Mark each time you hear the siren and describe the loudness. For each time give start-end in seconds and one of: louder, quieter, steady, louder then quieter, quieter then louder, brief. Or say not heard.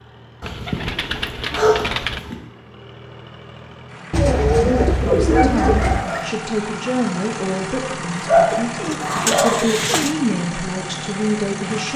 not heard.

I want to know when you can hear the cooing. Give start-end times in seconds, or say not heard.
0.5-2.2, 4.1-6.0, 8.4-10.2.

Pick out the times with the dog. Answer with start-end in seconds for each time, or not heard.
0.4-2.4, 4.3-6.2, 8.2-9.6.